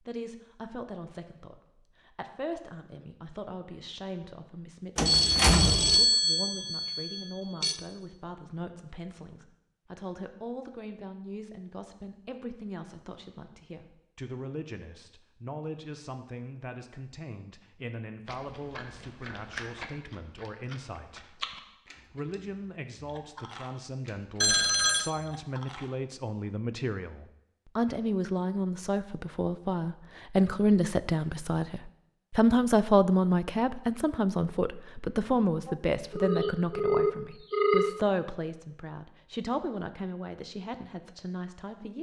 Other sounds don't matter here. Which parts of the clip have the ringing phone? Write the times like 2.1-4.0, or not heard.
5.0-7.8, 24.4-25.1, 35.6-37.9.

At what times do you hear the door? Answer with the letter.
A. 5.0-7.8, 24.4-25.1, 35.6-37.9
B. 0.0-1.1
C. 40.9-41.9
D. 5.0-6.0
D.